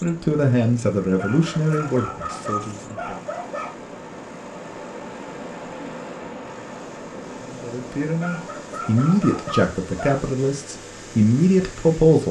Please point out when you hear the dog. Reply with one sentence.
You can hear the dog from 1.1 to 3.8 s and from 8.2 to 10.2 s.